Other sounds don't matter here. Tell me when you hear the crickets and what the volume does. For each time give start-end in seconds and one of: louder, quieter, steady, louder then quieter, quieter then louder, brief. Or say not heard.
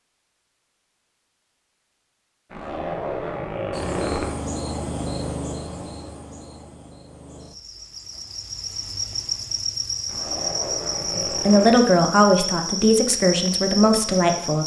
3.7-14.6 quieter then louder.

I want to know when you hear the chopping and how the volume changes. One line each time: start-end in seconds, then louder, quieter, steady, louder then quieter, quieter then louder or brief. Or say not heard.
not heard.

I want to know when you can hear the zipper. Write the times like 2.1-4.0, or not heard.
2.5-4.2, 10.1-11.8.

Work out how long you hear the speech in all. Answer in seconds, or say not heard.
3 s.